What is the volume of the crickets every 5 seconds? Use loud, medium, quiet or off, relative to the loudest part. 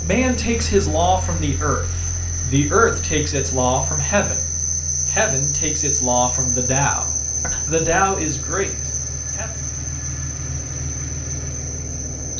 loud, loud, medium.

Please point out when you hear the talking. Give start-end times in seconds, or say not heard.
0.0-9.5.